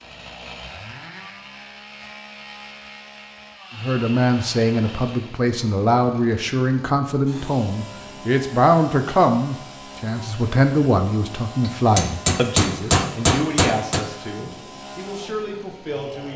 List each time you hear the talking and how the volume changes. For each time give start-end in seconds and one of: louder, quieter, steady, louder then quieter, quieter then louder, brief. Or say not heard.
3.8-16.3 quieter.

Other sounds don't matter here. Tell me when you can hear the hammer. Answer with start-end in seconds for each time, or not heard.
11.7-14.1.